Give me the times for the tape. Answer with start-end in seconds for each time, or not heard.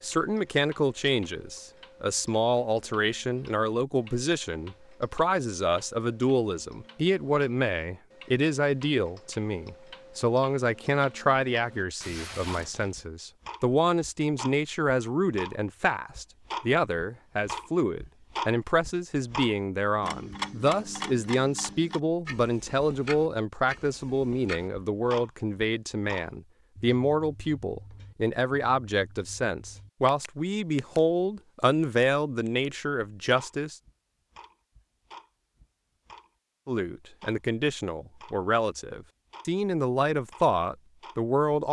12.0-13.1.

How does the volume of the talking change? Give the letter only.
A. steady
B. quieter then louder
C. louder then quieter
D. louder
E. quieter
A.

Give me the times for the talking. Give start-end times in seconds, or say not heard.
0.0-33.8, 36.6-41.6.